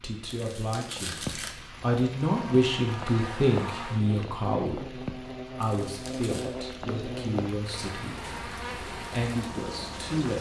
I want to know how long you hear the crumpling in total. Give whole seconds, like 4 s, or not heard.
2 s.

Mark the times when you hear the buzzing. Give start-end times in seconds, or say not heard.
2.1-10.3.